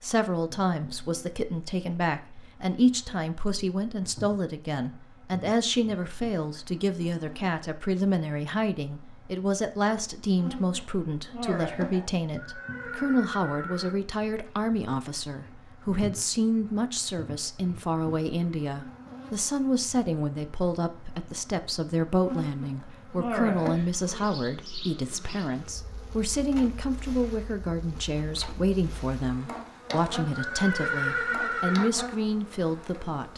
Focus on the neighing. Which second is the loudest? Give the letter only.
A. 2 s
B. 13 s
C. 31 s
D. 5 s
C.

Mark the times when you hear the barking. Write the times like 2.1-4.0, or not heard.
not heard.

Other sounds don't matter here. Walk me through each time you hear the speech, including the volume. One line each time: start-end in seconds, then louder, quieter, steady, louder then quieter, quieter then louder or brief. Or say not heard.
0.0-33.3 steady.